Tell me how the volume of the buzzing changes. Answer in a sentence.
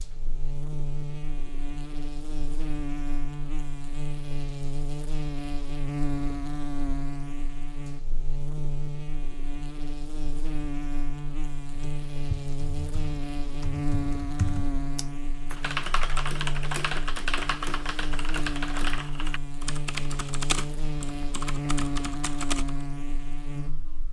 The volume of the buzzing stays about the same.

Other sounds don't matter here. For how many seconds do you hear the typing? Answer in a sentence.
You can hear the typing for 11 seconds altogether.